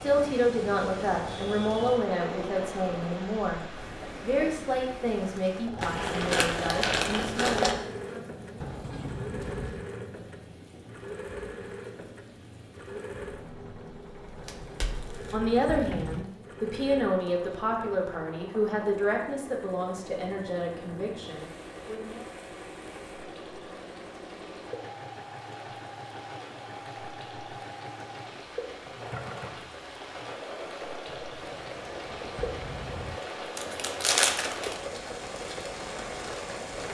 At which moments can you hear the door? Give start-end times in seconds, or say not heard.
8.6-9.9, 14.4-16.3, 31.1-33.2.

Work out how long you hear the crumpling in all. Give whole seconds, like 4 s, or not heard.
5 s.